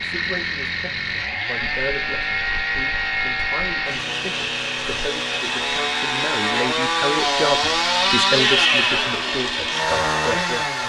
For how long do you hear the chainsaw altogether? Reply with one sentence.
You can hear the chainsaw for 11 seconds altogether.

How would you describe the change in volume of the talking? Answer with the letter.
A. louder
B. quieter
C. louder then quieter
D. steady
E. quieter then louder
A.